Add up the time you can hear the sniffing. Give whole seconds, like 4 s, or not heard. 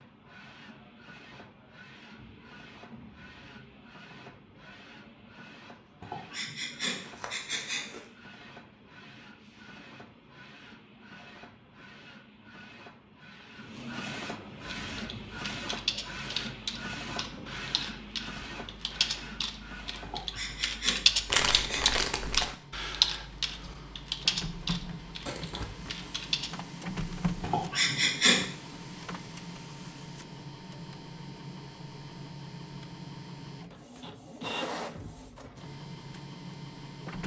5 s.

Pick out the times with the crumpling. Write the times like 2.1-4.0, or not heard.
7.0-8.1, 21.2-22.5, 25.2-25.9.